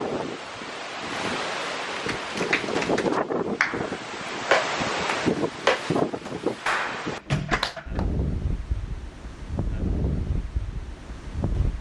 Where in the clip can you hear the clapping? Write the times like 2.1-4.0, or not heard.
2.1-8.1.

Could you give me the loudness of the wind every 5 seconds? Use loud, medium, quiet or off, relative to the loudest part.
loud, loud, medium.